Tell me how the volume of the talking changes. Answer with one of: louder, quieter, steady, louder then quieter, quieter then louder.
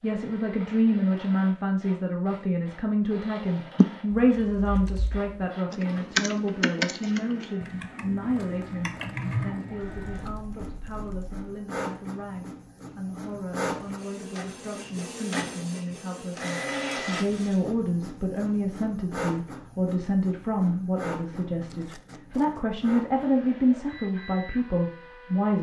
quieter then louder.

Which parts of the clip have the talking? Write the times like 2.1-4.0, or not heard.
0.0-25.5.